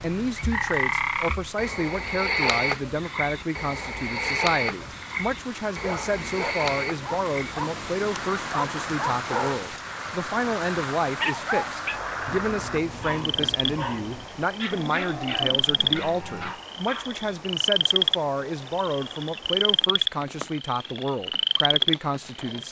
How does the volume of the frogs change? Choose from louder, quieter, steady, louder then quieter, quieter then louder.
quieter then louder.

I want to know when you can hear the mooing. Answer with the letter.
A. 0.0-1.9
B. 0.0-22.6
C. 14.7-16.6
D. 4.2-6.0
C.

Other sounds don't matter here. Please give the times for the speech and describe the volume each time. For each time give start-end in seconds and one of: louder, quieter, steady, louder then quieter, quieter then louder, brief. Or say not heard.
0.0-22.6 steady.